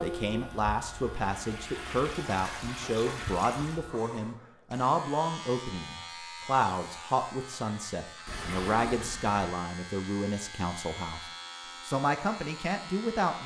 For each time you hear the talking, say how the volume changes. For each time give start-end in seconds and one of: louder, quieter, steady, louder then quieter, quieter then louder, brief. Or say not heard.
0.0-13.4 steady.